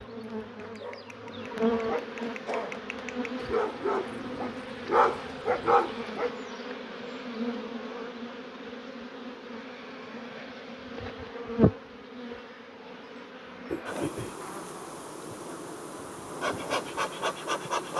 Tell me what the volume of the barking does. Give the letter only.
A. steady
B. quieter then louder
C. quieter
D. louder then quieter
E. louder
E.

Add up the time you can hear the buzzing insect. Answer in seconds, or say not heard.
18 s.